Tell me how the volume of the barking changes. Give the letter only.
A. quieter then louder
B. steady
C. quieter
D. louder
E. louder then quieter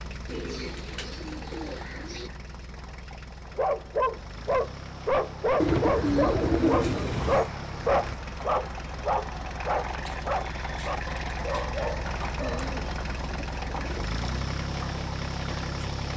C.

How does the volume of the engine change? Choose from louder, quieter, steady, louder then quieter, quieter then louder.
louder.